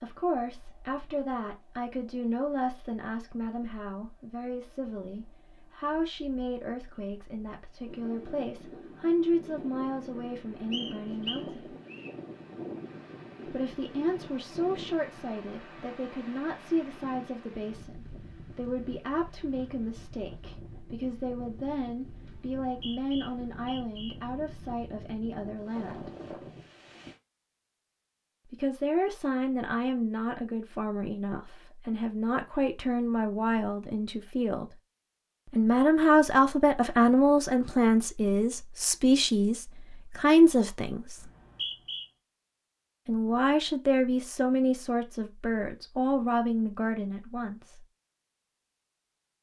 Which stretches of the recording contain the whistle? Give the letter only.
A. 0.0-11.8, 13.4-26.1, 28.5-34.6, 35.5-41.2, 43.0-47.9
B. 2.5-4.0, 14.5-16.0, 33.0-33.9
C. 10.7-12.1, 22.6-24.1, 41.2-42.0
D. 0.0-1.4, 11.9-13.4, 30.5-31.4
C.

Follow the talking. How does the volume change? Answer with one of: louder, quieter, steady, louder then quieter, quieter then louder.
louder.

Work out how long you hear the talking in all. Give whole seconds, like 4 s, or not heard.
41 s.